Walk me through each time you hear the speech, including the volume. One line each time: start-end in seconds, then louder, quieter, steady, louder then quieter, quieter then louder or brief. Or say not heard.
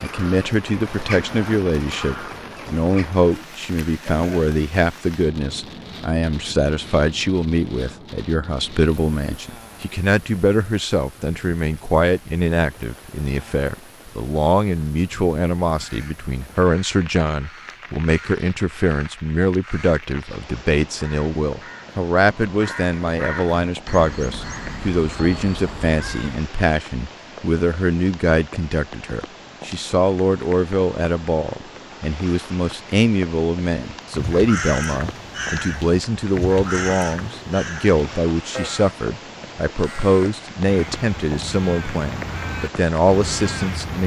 0.0-44.0 steady.